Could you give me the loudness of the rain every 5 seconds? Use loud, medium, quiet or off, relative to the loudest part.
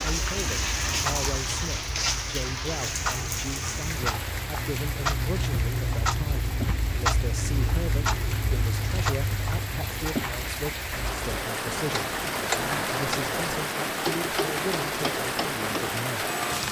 loud, medium, loud, loud.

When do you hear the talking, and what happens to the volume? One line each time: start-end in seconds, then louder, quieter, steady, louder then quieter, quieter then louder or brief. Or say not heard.
0.0-16.2 steady.